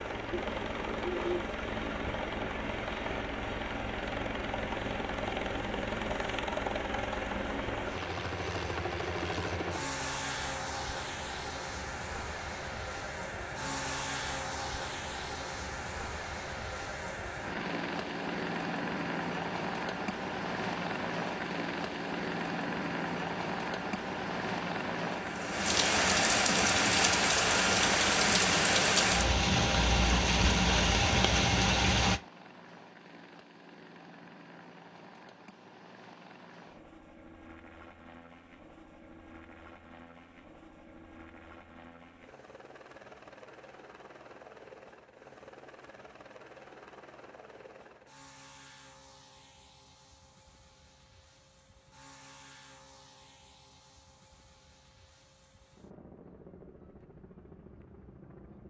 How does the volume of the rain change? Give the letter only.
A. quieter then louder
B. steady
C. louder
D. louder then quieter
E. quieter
C.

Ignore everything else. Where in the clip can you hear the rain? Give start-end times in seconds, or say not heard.
0.0-32.2.